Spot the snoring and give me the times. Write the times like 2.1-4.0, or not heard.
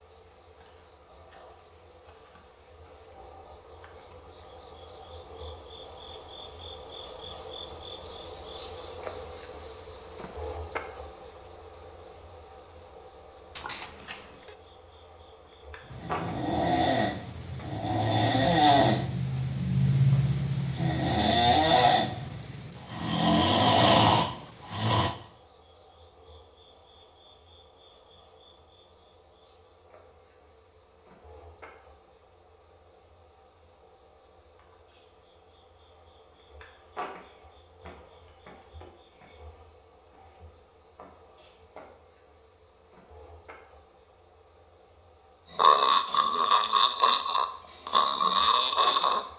15.9-25.1, 45.5-49.2.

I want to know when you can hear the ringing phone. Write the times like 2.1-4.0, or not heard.
13.6-14.6.